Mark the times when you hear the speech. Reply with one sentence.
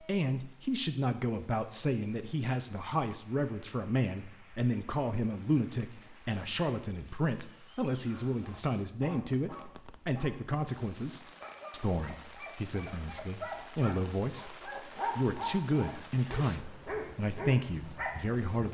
The speech can be heard from 0.0 to 18.6 s.